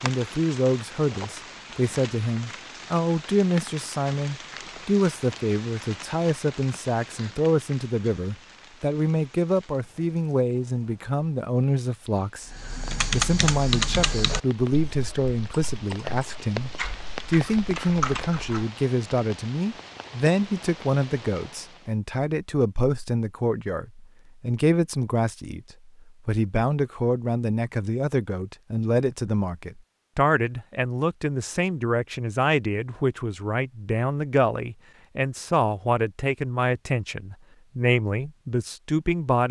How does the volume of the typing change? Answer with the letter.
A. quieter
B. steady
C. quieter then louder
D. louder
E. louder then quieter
C.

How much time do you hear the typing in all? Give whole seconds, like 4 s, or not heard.
6 s.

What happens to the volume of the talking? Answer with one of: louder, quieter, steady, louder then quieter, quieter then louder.
steady.